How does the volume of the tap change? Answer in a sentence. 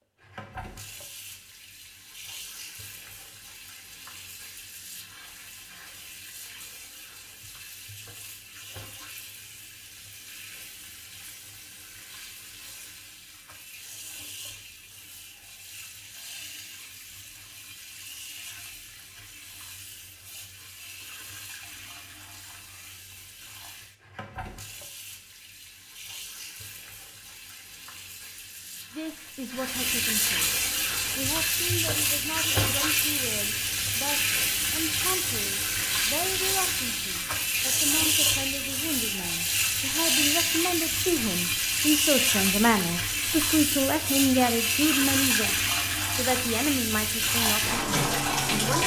The volume of the tap goes up.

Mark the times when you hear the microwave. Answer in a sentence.
You can't hear the microwave here.